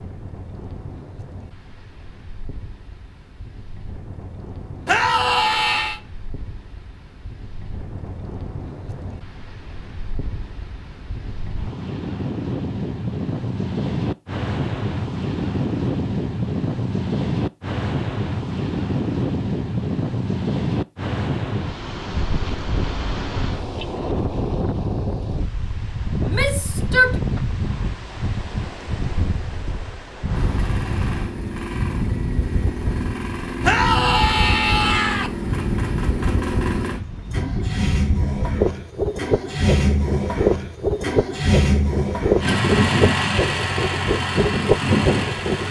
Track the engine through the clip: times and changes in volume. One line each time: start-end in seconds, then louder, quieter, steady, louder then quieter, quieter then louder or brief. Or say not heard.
30.4-45.6 louder.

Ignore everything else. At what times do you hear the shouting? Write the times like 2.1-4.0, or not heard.
4.8-6.0, 26.2-27.2, 33.6-35.3.